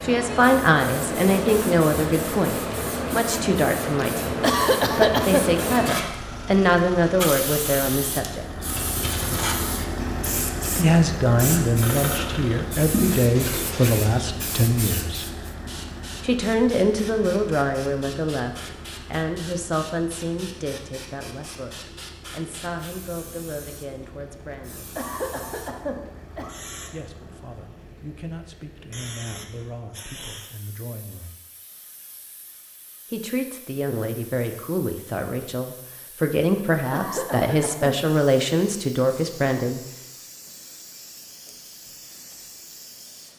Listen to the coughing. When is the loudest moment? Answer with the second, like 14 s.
5 s.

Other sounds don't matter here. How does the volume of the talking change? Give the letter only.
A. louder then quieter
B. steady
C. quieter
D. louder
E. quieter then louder
E.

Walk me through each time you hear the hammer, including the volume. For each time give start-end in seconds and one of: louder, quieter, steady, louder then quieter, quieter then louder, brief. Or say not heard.
not heard.